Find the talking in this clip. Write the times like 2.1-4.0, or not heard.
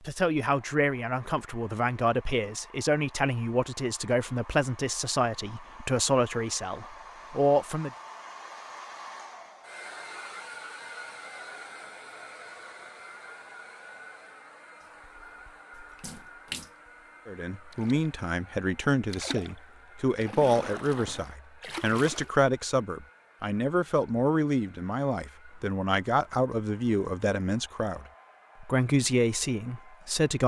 0.1-7.9, 17.2-30.4.